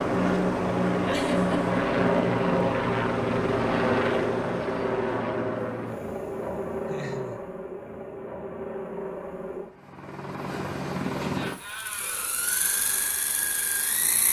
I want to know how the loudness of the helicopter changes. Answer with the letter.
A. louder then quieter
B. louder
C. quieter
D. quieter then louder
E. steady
C.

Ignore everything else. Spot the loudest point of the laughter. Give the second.
1 s.